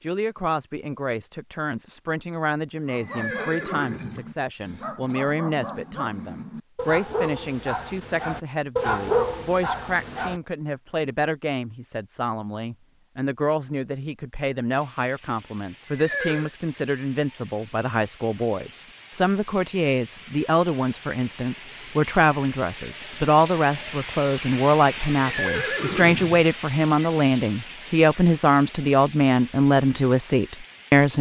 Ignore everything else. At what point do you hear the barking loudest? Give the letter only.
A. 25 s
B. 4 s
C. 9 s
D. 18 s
C.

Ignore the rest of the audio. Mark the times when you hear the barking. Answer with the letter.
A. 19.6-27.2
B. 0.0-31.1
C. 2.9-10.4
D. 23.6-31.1
C.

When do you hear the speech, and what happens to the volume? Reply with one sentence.
You can hear the speech from 0.0 to 31.1 s, getting louder.